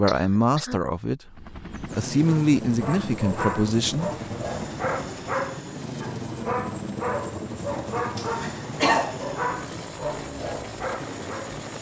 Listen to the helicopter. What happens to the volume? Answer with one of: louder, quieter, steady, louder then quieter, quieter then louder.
steady.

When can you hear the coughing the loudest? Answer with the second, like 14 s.
9 s.